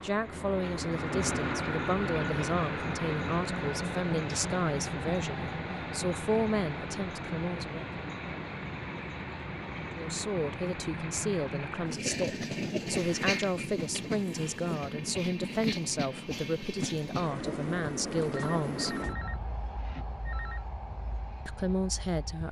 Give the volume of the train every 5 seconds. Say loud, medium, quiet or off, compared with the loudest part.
loud, loud, loud, loud, quiet.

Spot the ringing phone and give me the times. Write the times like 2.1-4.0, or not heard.
18.3-20.6.